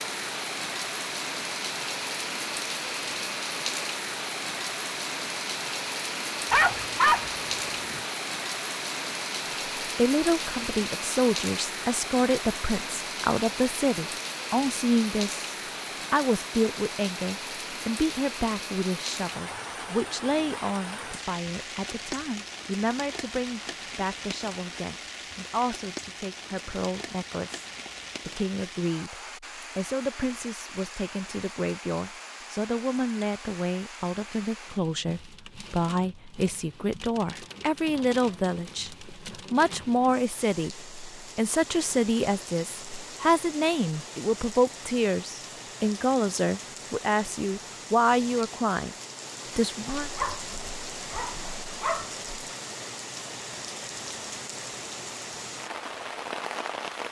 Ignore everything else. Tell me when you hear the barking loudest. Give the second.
7 s.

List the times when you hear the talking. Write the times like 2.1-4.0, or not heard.
9.9-49.0, 49.5-50.1.